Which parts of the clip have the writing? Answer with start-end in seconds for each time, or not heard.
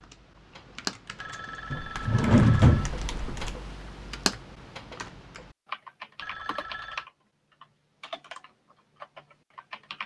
not heard.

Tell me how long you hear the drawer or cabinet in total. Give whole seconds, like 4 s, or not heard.
2 s.